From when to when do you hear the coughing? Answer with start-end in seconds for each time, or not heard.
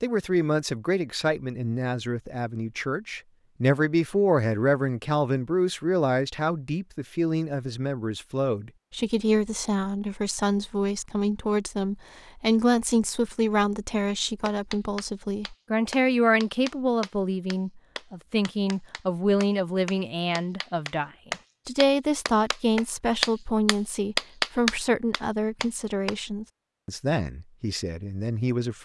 not heard.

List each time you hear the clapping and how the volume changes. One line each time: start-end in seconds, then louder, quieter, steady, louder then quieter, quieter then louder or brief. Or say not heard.
14.4-26.1 quieter then louder.